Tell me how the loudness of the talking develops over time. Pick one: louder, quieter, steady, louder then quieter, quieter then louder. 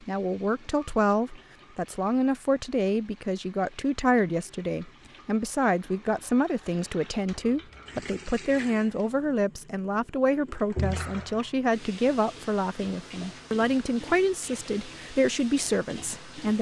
steady.